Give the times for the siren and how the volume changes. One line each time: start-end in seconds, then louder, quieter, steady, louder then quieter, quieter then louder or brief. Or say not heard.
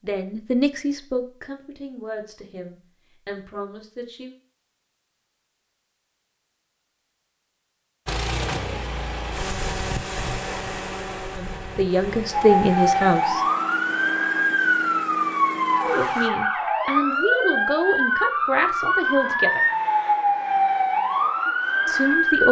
12.3-22.4 steady.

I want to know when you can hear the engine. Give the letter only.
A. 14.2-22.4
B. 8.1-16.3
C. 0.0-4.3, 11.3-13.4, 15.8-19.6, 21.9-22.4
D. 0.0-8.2
B.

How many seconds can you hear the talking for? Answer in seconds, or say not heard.
11 s.